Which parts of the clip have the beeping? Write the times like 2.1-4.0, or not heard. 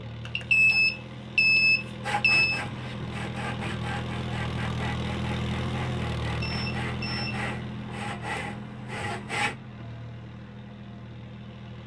0.2-2.6, 6.4-7.5.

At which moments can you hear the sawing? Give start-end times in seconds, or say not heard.
2.0-9.6.